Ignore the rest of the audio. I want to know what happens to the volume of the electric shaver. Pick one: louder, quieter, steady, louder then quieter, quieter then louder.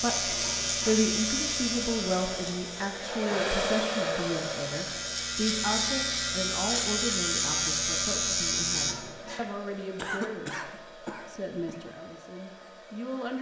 quieter then louder.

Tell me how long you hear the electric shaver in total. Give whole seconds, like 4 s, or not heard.
9 s.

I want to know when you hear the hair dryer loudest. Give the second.
4 s.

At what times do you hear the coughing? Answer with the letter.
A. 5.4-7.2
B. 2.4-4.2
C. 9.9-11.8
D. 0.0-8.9
C.